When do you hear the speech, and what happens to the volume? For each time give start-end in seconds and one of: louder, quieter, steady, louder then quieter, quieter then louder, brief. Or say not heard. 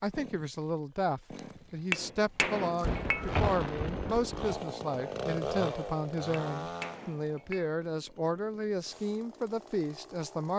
0.0-10.5 steady.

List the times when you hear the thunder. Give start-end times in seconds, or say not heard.
2.8-4.7.